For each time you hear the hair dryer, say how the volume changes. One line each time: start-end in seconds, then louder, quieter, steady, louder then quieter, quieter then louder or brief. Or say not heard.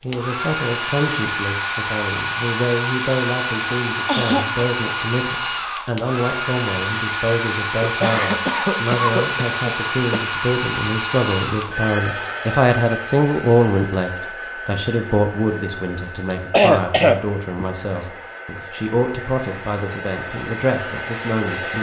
0.0-21.7 quieter.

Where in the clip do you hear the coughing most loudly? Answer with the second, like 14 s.
17 s.